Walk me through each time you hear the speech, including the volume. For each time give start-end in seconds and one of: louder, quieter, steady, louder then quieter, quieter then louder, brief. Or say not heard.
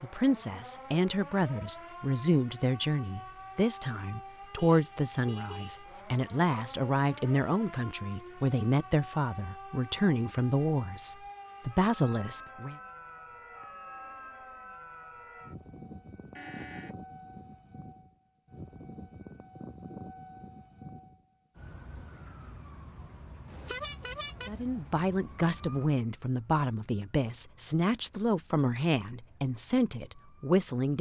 0.0-12.8 steady
24.4-30.9 steady.